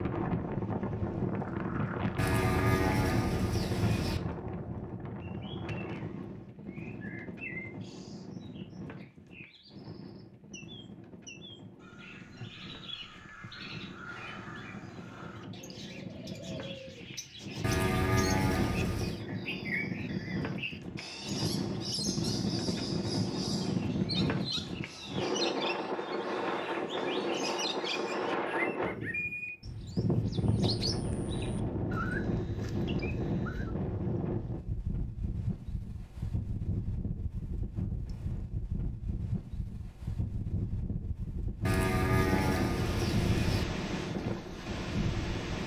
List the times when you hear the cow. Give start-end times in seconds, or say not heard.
2.1-4.2, 17.6-19.2, 41.6-43.6.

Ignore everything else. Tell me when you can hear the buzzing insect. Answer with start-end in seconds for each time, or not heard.
not heard.